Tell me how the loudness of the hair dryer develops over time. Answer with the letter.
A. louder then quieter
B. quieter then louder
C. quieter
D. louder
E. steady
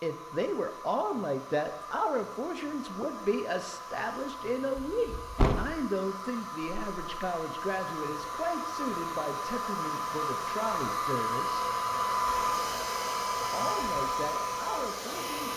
D.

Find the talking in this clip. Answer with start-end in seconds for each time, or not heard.
0.0-11.7, 13.5-15.5.